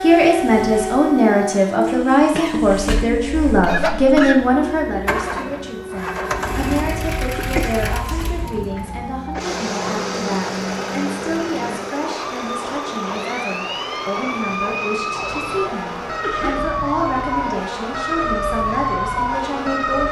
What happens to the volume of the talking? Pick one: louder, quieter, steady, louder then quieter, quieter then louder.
quieter.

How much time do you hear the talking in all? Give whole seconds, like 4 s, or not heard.
20 s.